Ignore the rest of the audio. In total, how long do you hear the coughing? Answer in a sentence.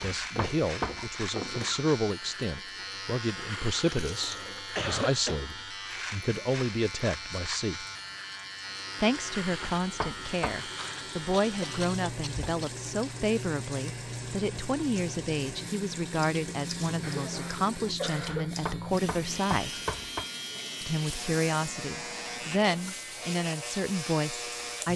The coughing can be heard for 4 seconds in total.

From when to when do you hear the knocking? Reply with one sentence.
You can hear the knocking from 0.0 to 1.1 s, from 9.6 to 10.6 s and from 18.4 to 20.2 s.